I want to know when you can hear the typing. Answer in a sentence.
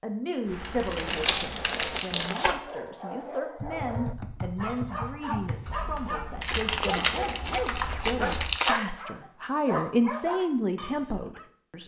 The typing can be heard from 0.5 to 8.6 s.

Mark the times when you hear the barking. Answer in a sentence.
You can hear the barking from 1.4 to 11.5 s.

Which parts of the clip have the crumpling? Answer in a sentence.
The crumpling can be heard from 0.9 to 2.6 s and from 6.4 to 8.8 s.